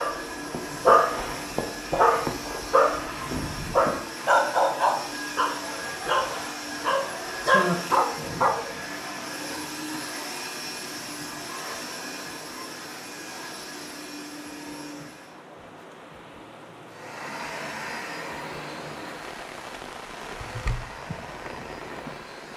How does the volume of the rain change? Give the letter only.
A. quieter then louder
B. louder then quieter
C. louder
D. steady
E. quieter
C.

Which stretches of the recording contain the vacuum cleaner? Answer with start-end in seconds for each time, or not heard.
0.0-15.4, 16.9-22.5.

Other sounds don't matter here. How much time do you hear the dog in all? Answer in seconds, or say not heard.
9 s.